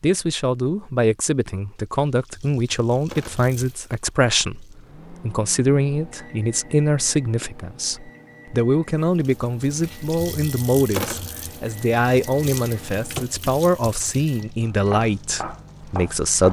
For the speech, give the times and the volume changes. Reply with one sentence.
The speech can be heard from 0.0 to 16.4 s, at a steady volume.